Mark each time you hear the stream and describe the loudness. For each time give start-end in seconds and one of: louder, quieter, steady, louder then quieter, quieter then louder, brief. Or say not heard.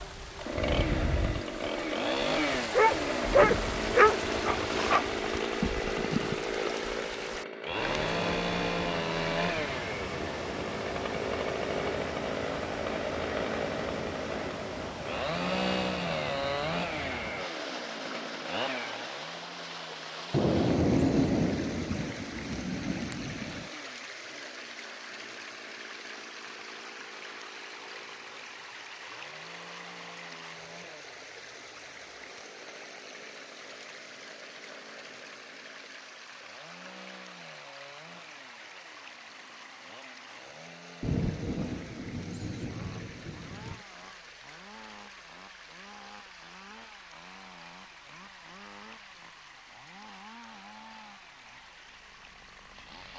0.0-53.1 quieter.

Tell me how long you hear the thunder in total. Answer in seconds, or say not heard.
8 s.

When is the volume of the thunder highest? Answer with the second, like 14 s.
21 s.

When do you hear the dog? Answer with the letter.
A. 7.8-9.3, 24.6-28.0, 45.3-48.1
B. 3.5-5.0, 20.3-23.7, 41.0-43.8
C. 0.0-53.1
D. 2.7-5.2
D.